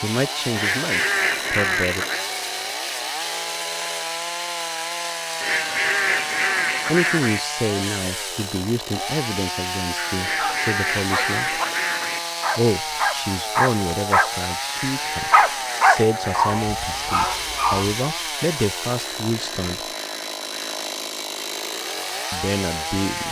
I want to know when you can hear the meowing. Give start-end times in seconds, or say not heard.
not heard.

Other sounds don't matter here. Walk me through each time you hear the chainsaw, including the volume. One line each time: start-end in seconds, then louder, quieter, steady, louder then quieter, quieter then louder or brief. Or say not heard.
0.0-23.2 steady.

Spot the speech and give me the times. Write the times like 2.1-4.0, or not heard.
0.0-2.0, 6.8-11.6, 12.6-19.9, 22.3-23.2.